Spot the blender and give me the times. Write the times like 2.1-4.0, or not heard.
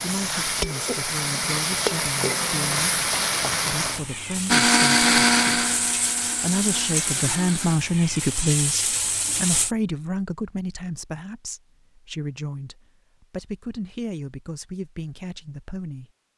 4.5-7.8.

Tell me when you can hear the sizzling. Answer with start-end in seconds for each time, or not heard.
0.0-9.8.